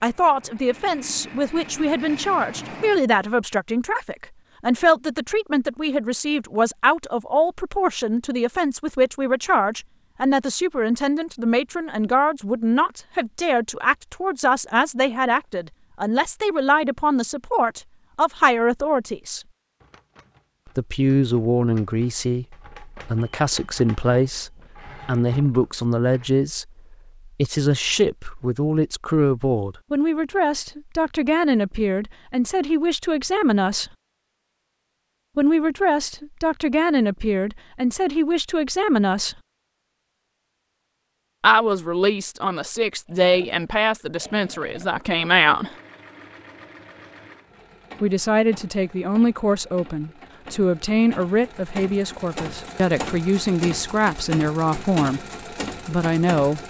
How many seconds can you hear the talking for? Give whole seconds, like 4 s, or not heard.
49 s.